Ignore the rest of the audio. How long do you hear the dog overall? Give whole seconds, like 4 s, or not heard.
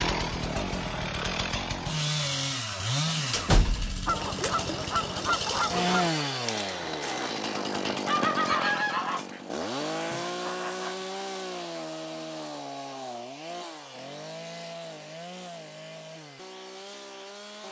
not heard.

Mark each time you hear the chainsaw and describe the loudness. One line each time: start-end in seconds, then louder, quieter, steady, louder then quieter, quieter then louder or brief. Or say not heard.
0.0-17.6 quieter.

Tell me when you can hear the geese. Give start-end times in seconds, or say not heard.
4.0-11.0.